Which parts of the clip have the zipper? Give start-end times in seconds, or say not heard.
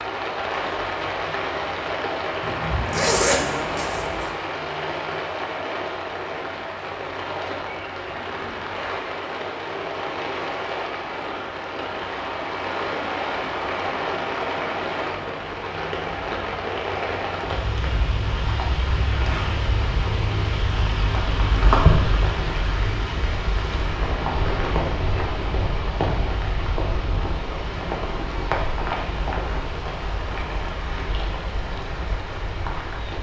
2.4-4.3.